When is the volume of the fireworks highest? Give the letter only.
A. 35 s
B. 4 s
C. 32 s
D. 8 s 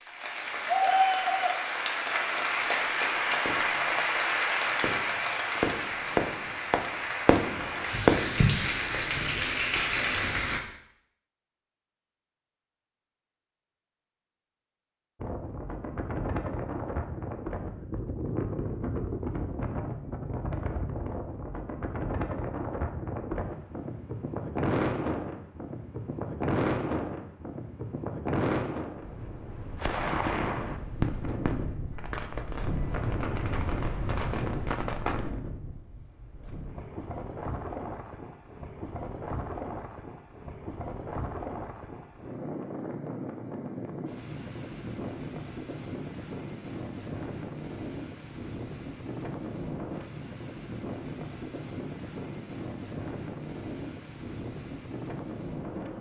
D.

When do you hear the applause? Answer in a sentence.
You can hear the applause from 0.0 to 10.6 s.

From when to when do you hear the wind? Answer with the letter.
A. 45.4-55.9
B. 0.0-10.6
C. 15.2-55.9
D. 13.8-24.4
C.